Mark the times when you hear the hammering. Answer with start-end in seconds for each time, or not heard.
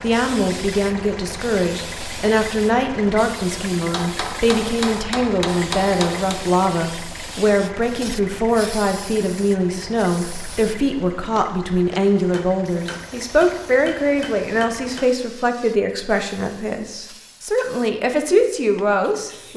3.9-6.4, 12.3-15.1.